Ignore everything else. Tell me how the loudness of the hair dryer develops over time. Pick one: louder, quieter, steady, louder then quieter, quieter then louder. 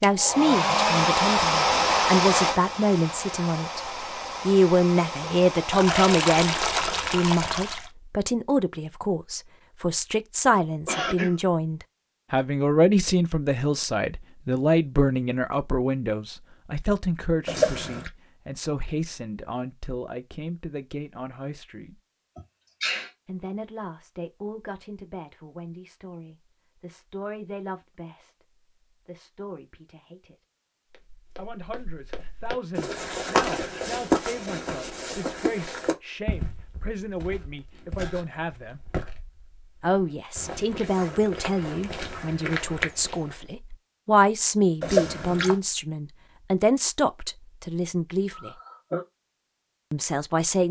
quieter.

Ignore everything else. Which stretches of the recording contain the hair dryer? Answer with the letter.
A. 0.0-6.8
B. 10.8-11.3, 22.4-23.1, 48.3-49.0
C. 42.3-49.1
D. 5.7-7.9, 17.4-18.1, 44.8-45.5
A.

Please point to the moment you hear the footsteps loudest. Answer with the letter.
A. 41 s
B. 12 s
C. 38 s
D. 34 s
D.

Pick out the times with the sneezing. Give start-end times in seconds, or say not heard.
10.8-11.3, 22.4-23.1, 48.3-49.0.